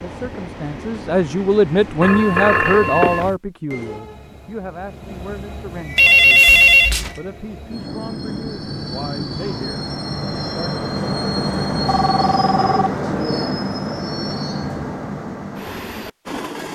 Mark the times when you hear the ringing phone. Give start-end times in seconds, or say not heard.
2.0-3.4, 6.0-7.1, 11.8-12.9.